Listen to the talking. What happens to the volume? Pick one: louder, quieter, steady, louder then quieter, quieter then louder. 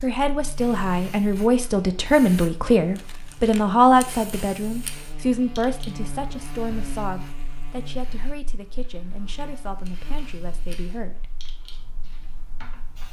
quieter.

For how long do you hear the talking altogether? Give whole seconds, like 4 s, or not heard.
11 s.